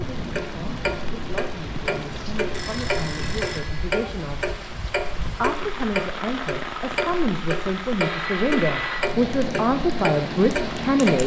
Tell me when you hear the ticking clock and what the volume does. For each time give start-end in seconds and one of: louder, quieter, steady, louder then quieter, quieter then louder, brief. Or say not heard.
0.1-11.2 steady.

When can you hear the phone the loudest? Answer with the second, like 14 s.
9 s.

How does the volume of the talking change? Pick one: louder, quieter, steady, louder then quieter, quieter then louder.
louder.